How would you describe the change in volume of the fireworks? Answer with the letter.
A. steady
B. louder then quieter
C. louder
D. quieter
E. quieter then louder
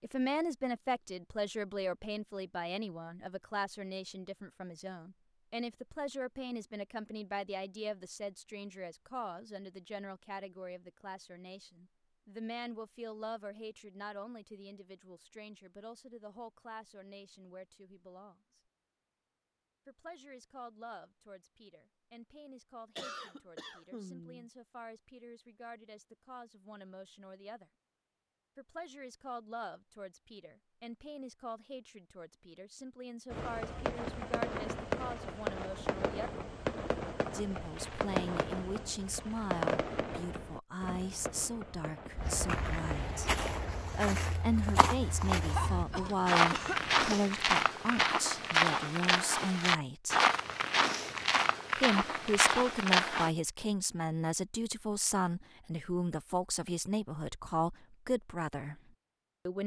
D.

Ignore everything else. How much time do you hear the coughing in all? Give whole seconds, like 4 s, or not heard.
3 s.